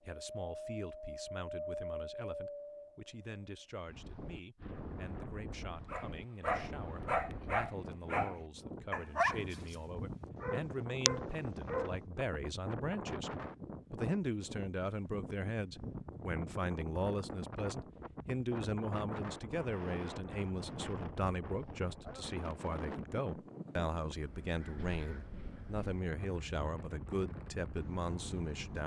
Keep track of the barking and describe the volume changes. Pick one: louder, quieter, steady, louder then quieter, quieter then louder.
quieter then louder.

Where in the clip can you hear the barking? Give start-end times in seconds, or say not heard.
5.8-11.9.